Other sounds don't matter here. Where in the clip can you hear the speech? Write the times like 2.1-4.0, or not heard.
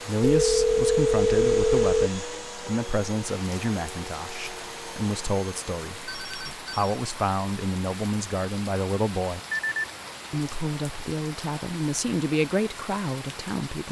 0.1-9.4, 10.3-13.8.